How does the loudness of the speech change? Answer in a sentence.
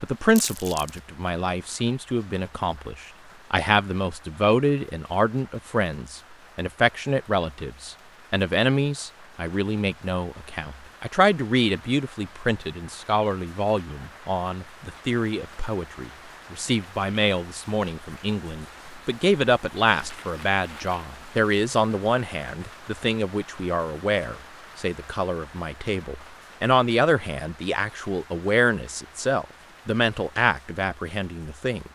The volume of the speech stays about the same.